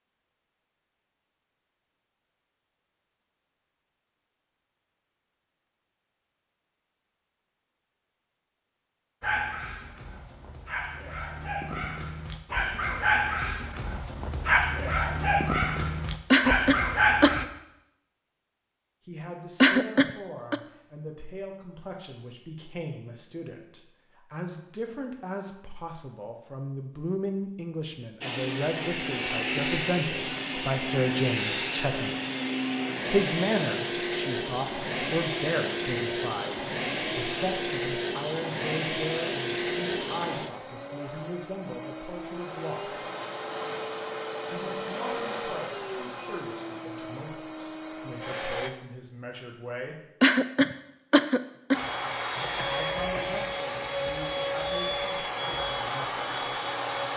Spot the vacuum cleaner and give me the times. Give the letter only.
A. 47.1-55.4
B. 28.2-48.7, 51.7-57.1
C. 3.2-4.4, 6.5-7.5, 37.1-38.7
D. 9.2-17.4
B.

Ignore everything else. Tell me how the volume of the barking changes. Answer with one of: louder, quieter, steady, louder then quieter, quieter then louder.
louder.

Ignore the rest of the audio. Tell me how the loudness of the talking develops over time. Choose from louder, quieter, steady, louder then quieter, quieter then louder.
louder then quieter.